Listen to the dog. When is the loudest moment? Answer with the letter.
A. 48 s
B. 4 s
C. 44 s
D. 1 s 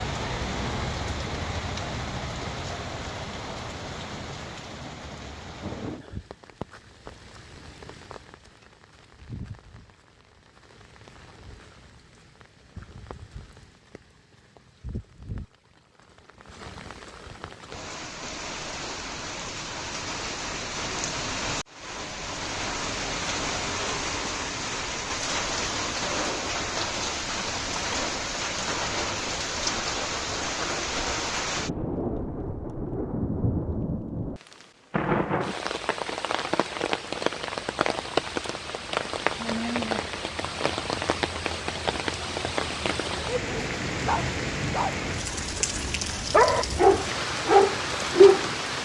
A.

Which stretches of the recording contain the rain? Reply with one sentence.
The rain can be heard from 0.0 to 48.8 s.